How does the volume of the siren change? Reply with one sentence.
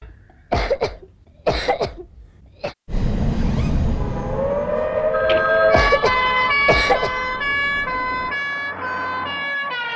The loudness of the siren goes up, then down.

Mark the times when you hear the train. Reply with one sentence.
You can hear the train from 2.9 to 8.4 s.